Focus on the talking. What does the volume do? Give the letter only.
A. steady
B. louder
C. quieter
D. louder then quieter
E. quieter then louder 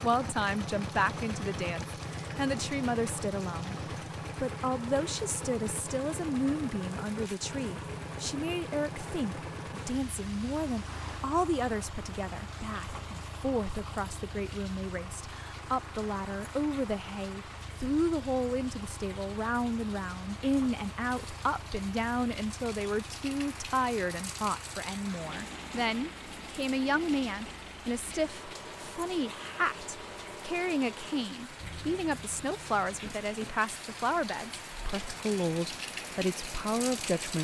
A.